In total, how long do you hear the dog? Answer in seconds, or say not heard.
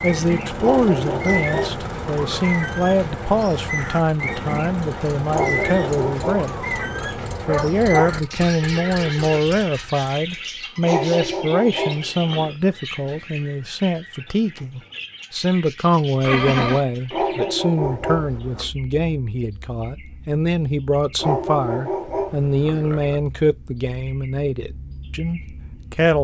10 s.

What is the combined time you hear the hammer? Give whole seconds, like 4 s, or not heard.
not heard.